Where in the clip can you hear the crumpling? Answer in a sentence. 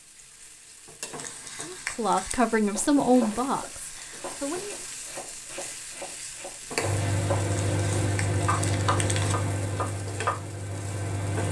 The crumpling can be heard from 1.1 to 2.4 s and from 7.5 to 9.4 s.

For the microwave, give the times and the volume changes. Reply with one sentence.
The microwave can be heard from 6.8 to 11.4 s, getting quieter.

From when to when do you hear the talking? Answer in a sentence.
You can hear the talking from 1.6 to 4.8 s.